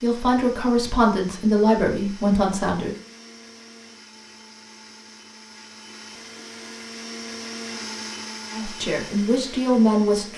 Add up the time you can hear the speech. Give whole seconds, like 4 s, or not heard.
5 s.